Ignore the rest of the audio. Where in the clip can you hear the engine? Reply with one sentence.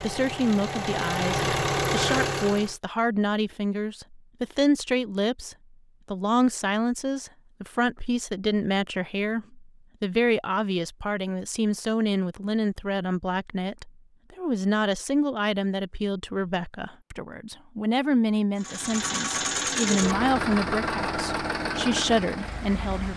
You can hear the engine from 0.0 to 2.8 s and from 18.6 to 23.1 s.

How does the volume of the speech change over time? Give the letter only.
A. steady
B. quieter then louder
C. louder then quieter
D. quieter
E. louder
A.